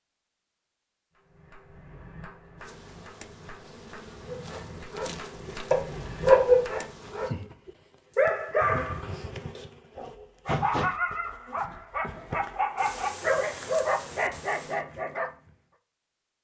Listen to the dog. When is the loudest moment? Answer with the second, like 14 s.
6 s.